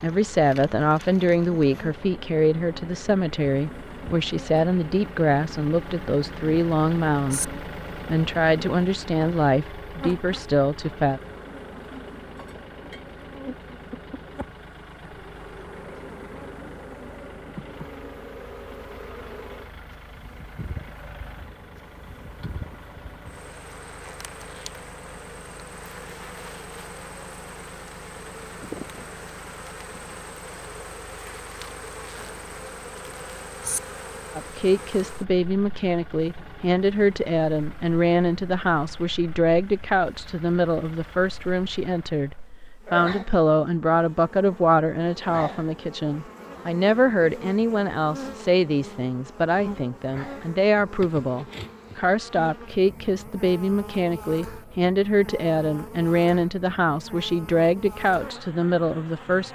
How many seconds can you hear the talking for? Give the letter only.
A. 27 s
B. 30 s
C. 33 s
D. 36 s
D.